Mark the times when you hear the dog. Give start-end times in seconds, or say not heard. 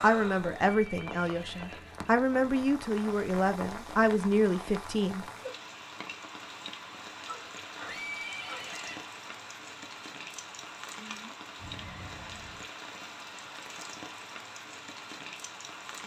7.2-8.8.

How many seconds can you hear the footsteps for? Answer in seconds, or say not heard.
not heard.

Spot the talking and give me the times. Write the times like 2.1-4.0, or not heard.
0.0-5.2.